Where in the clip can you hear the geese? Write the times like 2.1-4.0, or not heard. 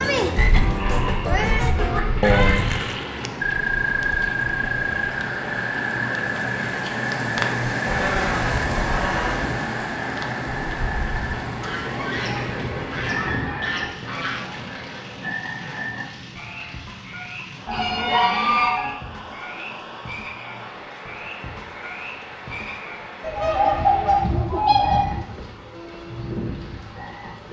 0.3-2.8, 7.8-9.4, 11.6-14.4, 17.6-18.9, 23.2-25.2.